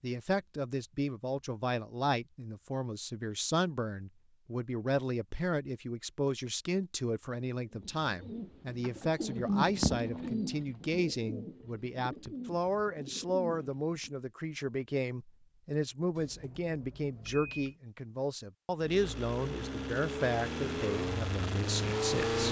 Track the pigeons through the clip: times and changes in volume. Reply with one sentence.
You can hear the pigeons from 7.7 to 14.1 s, getting louder then quieter.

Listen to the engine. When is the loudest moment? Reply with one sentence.
The loudest moment of the engine is at 22 seconds.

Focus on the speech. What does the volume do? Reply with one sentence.
The volume of the speech stays about the same.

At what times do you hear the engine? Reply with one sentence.
The engine can be heard from 18.8 to 22.4 s.